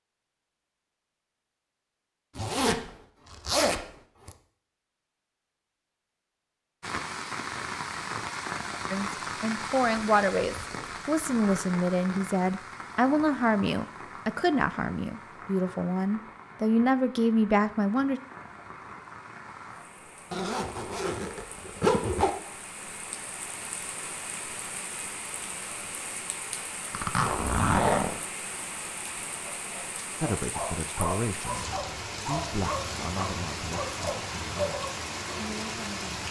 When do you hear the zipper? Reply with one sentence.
You can hear the zipper from 2.4 to 4.3 s, from 20.3 to 22.3 s and from 26.9 to 28.2 s.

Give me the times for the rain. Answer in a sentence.
You can hear the rain from 6.8 to 36.2 s.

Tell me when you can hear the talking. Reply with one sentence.
The talking can be heard from 8.9 to 18.2 s and from 30.2 to 36.1 s.